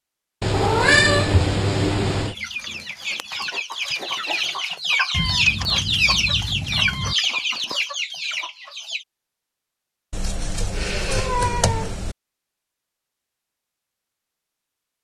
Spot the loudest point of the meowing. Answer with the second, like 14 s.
1 s.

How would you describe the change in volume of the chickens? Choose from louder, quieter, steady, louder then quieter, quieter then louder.
louder then quieter.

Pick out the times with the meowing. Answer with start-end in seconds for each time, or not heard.
0.4-2.4, 5.1-7.2, 10.1-12.2.